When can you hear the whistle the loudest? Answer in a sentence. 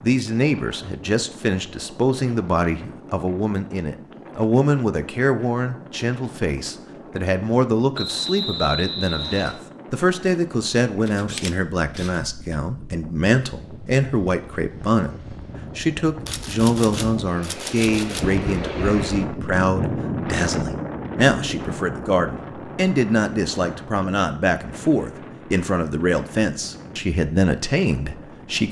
The loudest moment of the whistle is at 8 seconds.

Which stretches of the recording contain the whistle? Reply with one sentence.
You can hear the whistle from 8.0 to 9.6 s.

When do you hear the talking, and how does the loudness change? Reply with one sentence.
You can hear the talking from 0.0 to 28.6 s, at a steady volume.